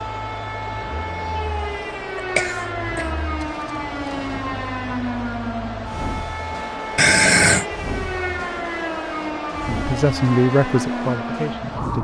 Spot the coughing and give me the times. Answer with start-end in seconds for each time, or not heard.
2.1-3.1, 7.0-7.7.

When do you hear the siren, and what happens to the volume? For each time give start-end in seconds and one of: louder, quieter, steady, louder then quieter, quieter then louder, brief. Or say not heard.
0.0-12.0 steady.